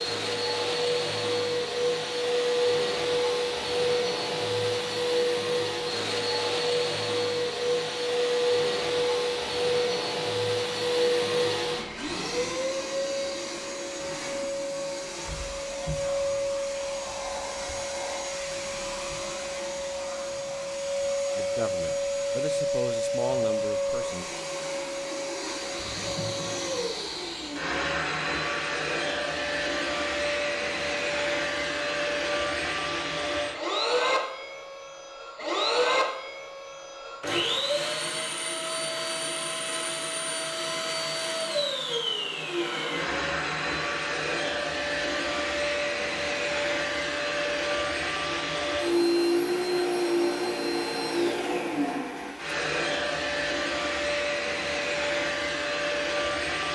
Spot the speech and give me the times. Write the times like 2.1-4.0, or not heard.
21.4-24.2.